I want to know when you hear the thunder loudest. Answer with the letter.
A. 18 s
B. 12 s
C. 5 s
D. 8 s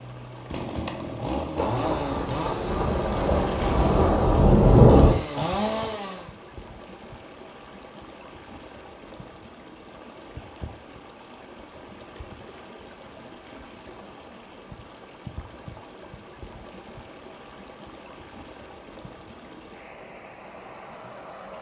C.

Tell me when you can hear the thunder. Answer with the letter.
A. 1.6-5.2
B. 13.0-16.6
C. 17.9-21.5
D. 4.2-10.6
A.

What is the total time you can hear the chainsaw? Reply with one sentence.
You can hear the chainsaw for 6 seconds altogether.